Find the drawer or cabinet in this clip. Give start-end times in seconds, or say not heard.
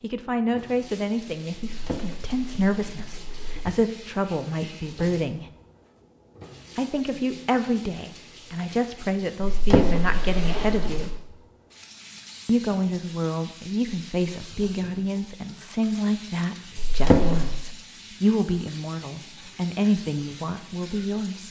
1.6-3.7, 9.5-11.2, 16.8-17.6.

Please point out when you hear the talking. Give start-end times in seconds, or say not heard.
0.0-5.5, 6.8-11.1, 12.4-21.4.